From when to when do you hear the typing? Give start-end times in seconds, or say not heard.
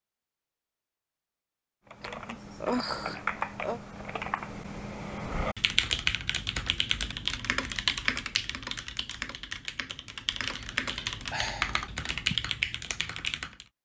1.9-13.7.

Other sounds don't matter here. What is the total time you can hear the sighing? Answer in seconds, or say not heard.
4 s.